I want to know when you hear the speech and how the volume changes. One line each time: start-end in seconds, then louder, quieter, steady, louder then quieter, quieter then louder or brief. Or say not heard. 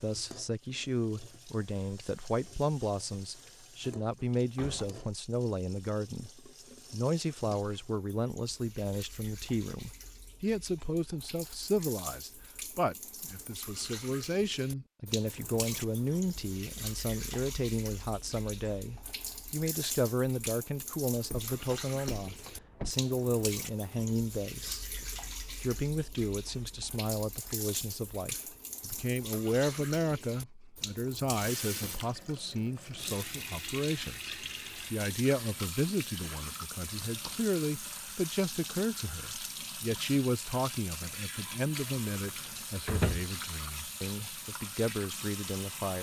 0.0-24.9 steady
25.6-45.9 steady.